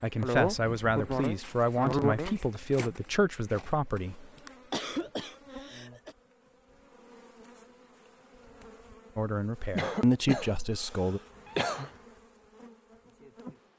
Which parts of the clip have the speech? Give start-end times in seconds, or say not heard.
0.0-4.2, 9.2-11.2.